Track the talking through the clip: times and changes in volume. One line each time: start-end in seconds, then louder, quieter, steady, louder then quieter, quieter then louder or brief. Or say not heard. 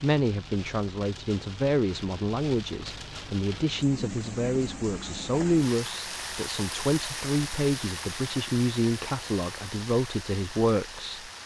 0.0-11.3 steady.